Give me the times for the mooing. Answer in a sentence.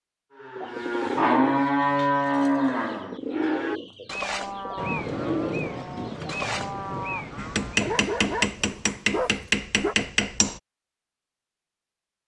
The mooing can be heard from 0.3 to 7.9 s.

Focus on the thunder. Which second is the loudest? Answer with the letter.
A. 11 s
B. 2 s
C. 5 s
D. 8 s
C.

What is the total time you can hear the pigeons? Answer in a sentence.
The pigeons can be heard for 6 seconds in total.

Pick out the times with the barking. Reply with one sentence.
You can hear the barking from 7.8 to 9.9 s.